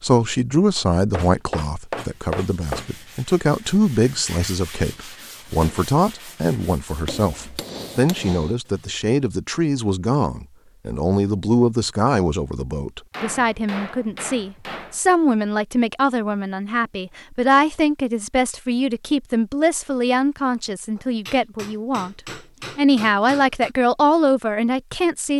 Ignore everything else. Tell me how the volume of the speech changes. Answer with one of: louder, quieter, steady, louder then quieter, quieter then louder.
steady.